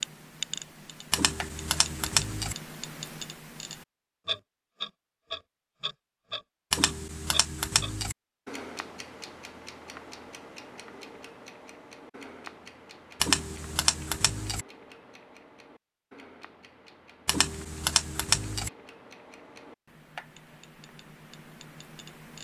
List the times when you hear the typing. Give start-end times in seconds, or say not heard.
1.1-2.5, 6.7-8.2, 13.2-14.7, 17.2-18.7.